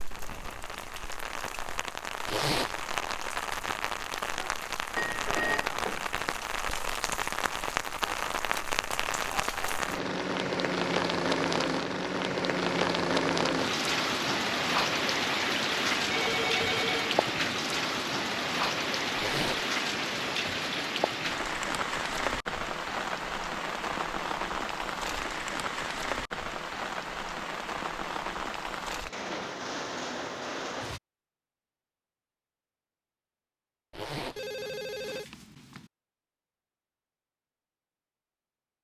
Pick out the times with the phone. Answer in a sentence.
The phone can be heard from 5.0 to 6.1 s, from 16.0 to 17.2 s and from 34.4 to 35.9 s.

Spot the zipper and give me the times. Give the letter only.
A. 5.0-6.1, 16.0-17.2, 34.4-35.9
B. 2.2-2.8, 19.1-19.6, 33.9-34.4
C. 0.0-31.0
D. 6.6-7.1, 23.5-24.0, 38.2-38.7
B.